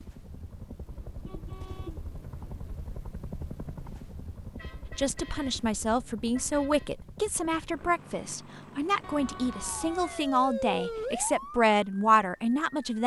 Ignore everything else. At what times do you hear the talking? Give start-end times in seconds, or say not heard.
4.8-13.0.